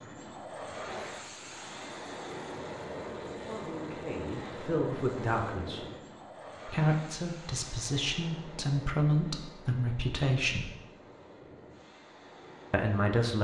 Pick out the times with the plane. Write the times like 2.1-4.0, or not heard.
0.0-13.2.